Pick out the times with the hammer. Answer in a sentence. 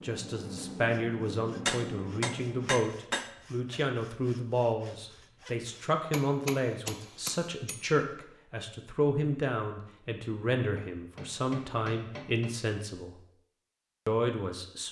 You can hear the hammer from 1.6 to 3.3 s, from 5.9 to 7.8 s and from 10.8 to 12.6 s.